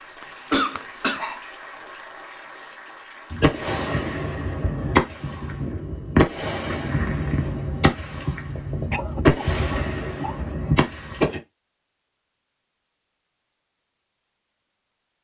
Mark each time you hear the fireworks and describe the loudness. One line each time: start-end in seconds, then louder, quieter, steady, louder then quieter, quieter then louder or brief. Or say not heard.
3.3-11.4 steady.